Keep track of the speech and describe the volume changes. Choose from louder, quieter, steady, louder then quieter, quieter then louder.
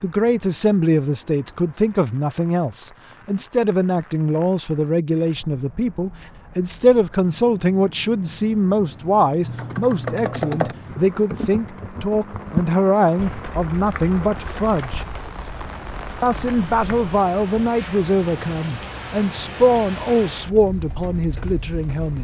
steady.